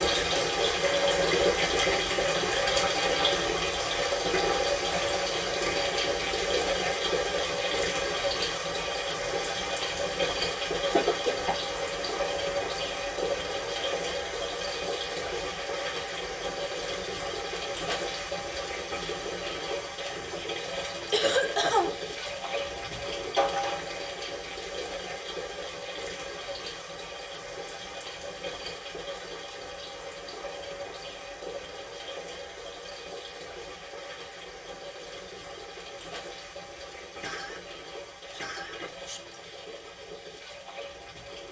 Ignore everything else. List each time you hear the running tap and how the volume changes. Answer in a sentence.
You can hear the running tap from 0.0 to 41.4 s, getting quieter.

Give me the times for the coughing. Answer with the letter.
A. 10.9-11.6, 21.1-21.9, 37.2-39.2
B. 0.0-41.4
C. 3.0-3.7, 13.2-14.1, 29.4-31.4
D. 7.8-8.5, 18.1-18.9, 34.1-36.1
A.